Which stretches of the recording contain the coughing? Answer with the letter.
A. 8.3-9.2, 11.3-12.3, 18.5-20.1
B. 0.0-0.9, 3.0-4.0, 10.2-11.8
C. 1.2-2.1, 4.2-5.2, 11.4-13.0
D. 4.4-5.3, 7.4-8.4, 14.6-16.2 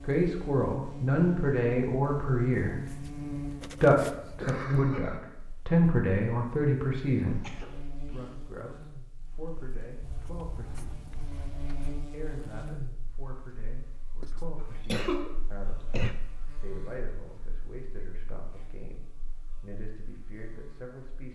D.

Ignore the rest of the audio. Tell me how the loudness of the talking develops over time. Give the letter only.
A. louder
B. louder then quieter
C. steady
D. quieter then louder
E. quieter
E.